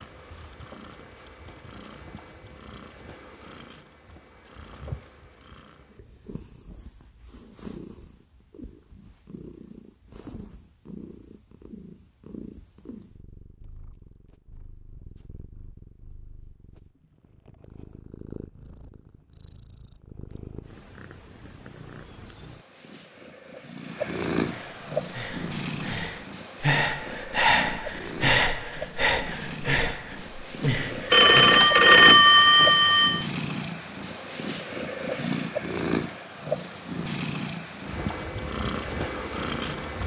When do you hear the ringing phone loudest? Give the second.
32 s.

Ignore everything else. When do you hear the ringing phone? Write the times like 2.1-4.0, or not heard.
31.1-33.2.